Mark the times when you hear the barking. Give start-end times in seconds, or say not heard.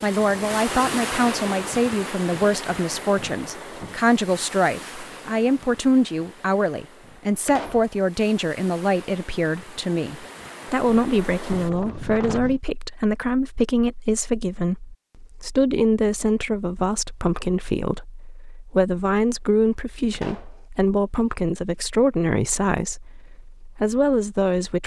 not heard.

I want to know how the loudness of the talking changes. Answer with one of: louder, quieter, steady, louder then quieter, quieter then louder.
steady.